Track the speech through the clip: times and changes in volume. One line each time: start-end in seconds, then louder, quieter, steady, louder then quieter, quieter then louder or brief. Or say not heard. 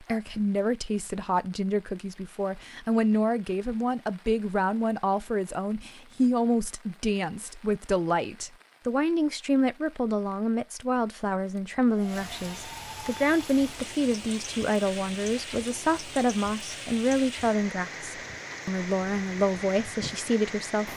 0.0-20.9 steady.